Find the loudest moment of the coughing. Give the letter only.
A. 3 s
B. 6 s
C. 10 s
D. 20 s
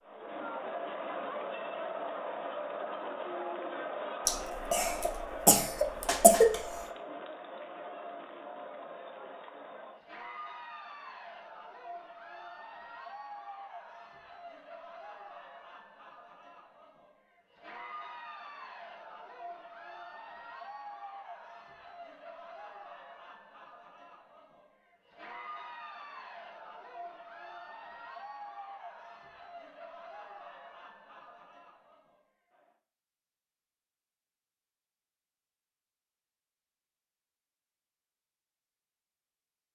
B.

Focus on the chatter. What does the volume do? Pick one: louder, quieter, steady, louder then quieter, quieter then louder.
quieter.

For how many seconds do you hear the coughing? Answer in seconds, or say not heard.
2 s.